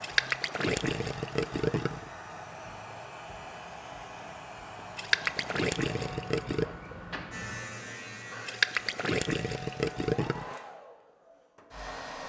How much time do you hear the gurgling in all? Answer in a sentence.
You can hear the gurgling for 6 seconds altogether.